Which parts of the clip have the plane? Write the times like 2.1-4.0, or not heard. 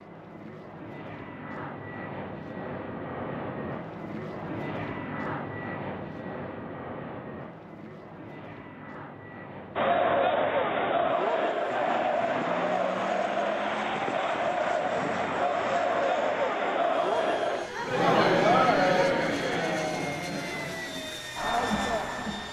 0.0-22.4.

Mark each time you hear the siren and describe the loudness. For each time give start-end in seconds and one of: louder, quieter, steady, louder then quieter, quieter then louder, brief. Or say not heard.
not heard.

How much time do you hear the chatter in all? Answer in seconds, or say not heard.
13 s.